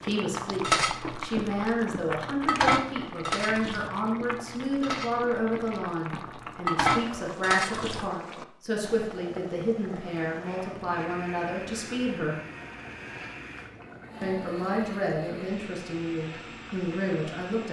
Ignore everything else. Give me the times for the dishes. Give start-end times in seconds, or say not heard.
0.6-8.1.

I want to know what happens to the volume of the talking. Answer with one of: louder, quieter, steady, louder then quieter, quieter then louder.
steady.